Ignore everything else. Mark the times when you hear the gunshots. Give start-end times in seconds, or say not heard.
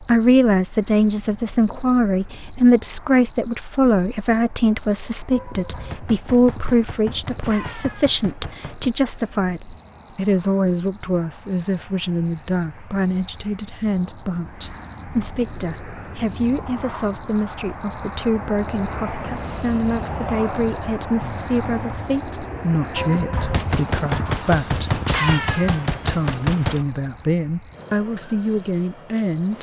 5.3-8.9, 22.9-26.9.